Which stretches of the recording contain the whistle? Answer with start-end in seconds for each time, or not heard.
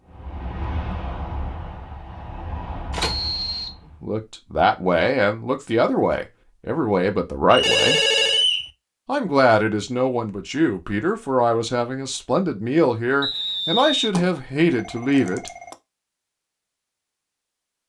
3.0-3.7, 7.5-8.7, 13.2-14.1.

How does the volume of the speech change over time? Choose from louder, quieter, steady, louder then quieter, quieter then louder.
steady.